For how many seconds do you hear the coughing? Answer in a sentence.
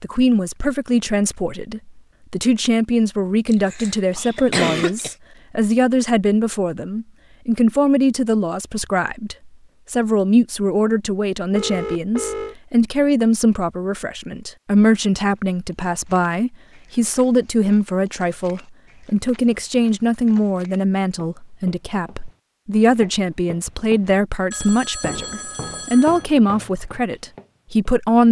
The coughing can be heard for 2 seconds in total.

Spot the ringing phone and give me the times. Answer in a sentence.
The ringing phone can be heard from 11.6 to 12.6 s and from 24.5 to 26.2 s.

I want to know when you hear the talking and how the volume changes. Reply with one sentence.
You can hear the talking from 0.0 to 28.2 s, at a steady volume.